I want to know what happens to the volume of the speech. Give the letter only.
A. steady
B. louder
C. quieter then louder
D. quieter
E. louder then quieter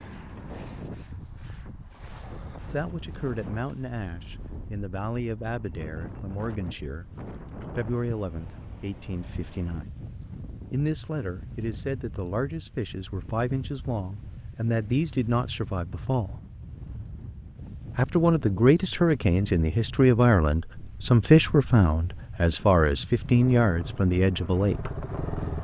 B.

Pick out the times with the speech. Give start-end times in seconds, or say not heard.
2.6-9.9, 10.7-16.4, 17.9-24.9.